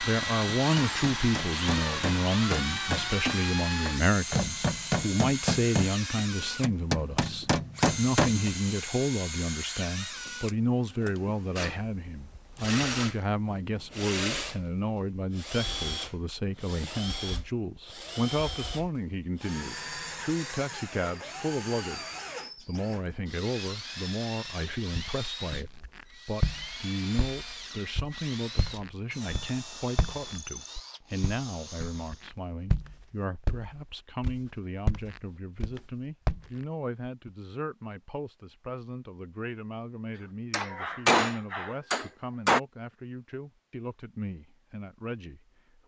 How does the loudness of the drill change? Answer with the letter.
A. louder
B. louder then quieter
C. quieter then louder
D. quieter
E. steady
D.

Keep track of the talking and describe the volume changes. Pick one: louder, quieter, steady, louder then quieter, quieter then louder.
quieter.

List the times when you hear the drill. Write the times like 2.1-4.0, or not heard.
0.0-32.2.